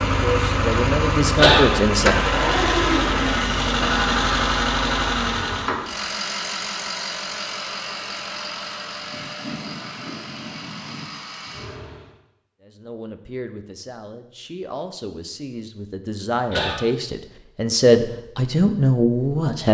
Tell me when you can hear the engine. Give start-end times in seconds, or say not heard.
0.0-12.2.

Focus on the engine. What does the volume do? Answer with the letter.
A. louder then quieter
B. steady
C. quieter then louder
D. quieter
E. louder
D.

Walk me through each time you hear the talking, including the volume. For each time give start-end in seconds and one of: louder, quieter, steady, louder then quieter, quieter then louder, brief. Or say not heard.
0.1-2.1 brief
12.6-19.6 louder.